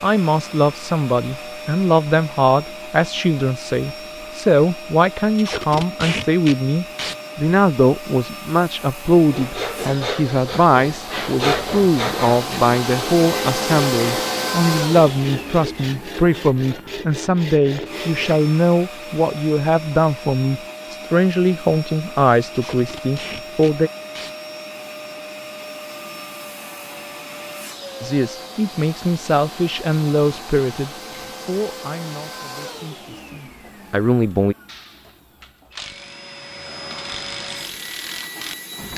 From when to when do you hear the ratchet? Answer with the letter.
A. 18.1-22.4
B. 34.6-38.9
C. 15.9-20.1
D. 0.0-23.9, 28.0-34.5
B.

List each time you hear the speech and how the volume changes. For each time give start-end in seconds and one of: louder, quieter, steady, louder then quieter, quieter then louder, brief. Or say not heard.
0.0-23.9 steady
28.0-34.5 quieter then louder.